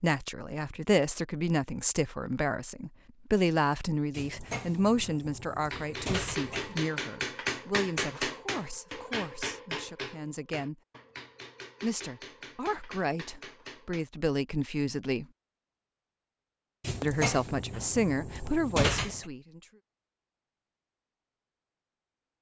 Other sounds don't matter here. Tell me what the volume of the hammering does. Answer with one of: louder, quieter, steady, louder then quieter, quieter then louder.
quieter.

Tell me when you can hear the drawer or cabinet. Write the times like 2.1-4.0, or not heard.
4.1-6.8, 16.8-19.2.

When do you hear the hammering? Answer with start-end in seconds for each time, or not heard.
5.7-14.1.